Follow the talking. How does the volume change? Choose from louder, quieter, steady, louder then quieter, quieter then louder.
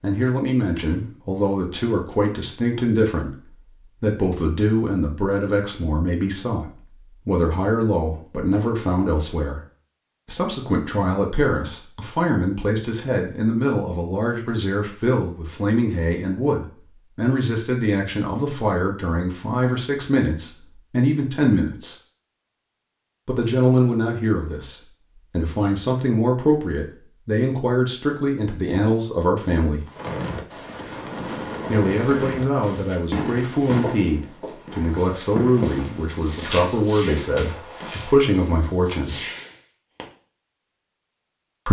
steady.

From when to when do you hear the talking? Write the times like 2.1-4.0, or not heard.
0.0-9.6, 10.2-21.9, 23.2-29.9, 31.7-39.2.